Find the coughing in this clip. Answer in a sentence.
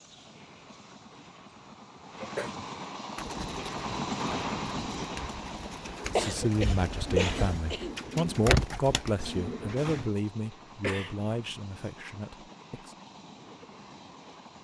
You can hear the coughing from 2.2 to 2.6 s, from 6.2 to 8.0 s and from 10.8 to 11.3 s.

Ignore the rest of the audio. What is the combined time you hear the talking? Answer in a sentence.
The talking can be heard for 7 seconds in total.